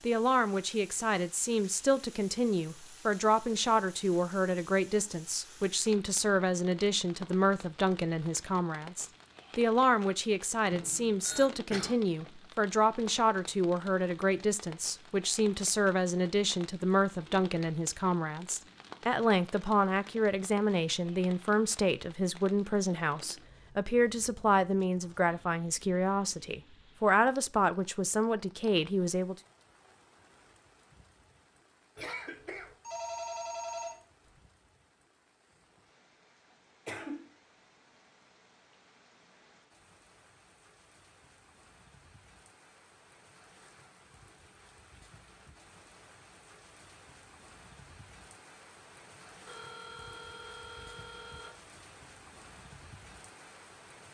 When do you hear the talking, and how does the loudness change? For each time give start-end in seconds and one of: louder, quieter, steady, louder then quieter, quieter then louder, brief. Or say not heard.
0.0-29.4 steady.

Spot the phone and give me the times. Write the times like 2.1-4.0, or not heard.
10.7-11.5, 32.6-34.4, 49.5-51.5.